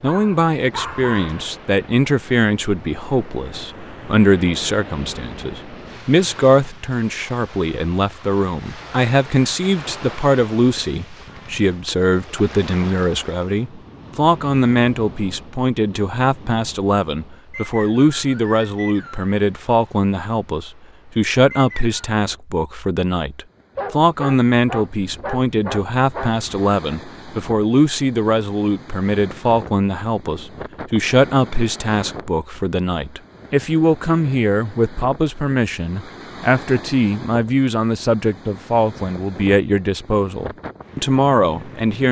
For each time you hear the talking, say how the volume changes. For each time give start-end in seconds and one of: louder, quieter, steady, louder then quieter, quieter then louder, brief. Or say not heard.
0.0-42.0 steady.